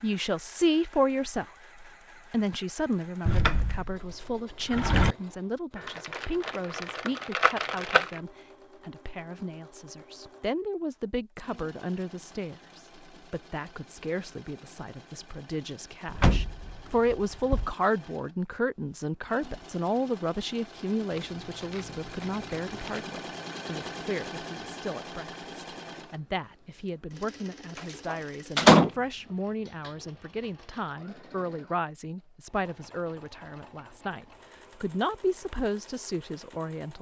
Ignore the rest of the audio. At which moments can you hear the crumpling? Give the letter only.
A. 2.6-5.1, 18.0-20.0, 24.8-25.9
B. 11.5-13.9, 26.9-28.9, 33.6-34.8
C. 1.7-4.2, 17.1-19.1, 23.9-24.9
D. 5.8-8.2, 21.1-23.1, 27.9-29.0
D.